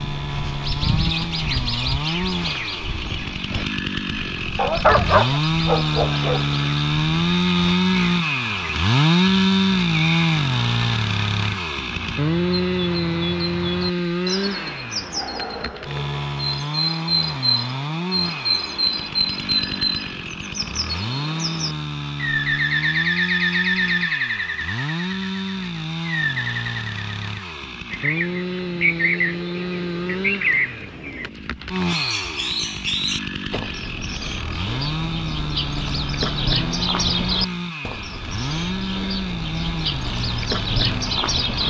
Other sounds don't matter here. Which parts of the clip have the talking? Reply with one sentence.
You can't hear the talking here.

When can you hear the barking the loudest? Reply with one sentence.
The volume of the barking peaks at 5 seconds.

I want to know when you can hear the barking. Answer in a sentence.
You can hear the barking from 4.5 to 6.5 s.